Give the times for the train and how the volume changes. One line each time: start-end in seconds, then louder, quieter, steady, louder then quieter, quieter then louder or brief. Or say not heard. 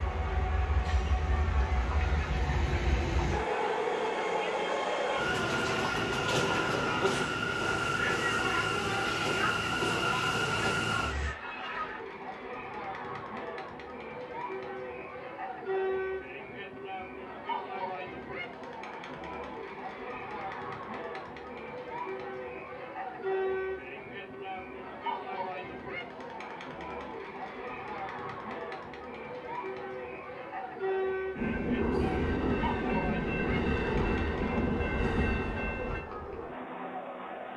0.0-11.3 louder
31.4-36.0 steady.